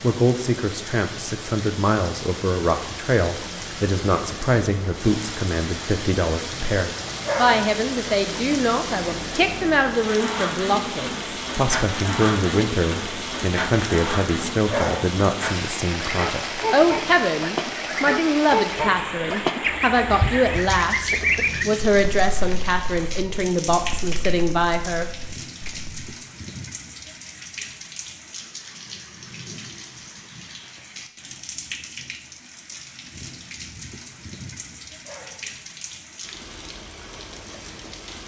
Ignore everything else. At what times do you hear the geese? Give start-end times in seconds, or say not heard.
16.1-26.1.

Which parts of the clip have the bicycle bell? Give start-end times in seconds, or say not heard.
not heard.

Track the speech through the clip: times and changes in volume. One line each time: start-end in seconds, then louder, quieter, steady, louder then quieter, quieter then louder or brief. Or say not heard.
0.0-25.1 steady.